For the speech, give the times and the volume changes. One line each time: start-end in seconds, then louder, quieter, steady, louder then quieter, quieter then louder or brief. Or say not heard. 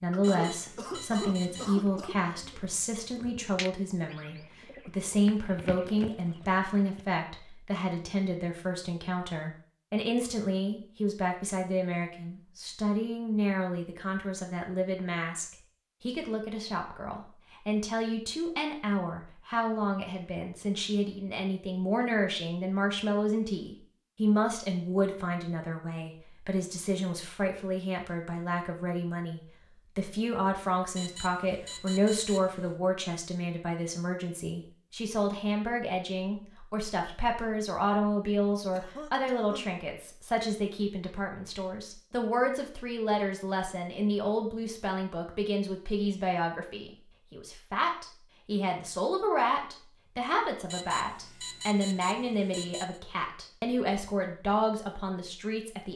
0.0-55.9 steady.